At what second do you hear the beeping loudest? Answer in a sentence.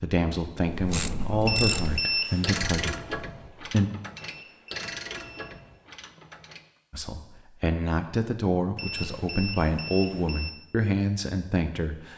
The volume of the beeping peaks at 2 seconds.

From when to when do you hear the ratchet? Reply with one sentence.
You can hear the ratchet from 0.7 to 6.7 s.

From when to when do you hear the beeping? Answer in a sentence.
You can hear the beeping from 1.4 to 2.5 s, from 4.2 to 5.5 s and from 8.8 to 10.5 s.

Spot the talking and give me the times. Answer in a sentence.
You can hear the talking from 0.0 to 3.9 s and from 6.9 to 12.1 s.